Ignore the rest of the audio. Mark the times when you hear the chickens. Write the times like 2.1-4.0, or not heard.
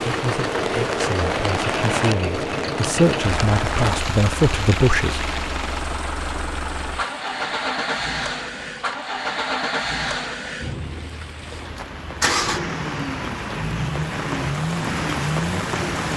not heard.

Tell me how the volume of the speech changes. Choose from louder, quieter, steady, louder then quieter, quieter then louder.
louder.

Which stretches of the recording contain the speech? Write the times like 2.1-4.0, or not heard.
0.0-5.2.